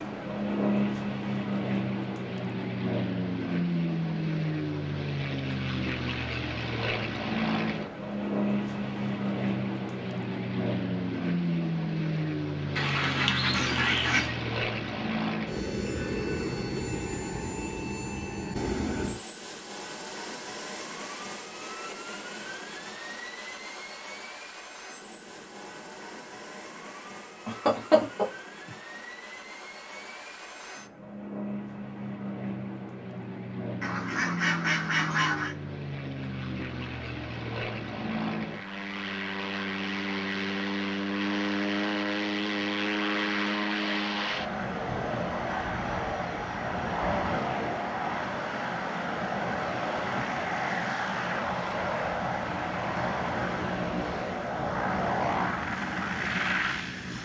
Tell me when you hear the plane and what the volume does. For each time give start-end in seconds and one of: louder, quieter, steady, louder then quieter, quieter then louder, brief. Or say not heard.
0.0-57.2 quieter then louder.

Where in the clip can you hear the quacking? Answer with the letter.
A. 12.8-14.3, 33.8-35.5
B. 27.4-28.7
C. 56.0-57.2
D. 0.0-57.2
A.